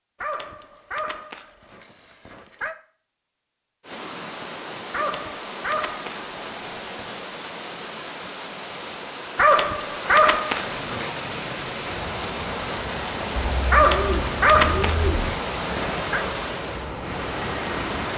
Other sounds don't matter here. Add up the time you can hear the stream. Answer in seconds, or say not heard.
14 s.